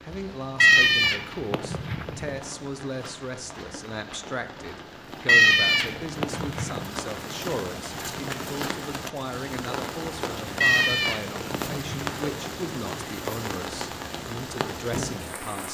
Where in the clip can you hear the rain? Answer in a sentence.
The rain can be heard from 0.0 to 15.6 s.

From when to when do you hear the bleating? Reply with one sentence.
The bleating can be heard from 0.6 to 2.4 s, from 5.2 to 6.8 s and from 10.6 to 12.2 s.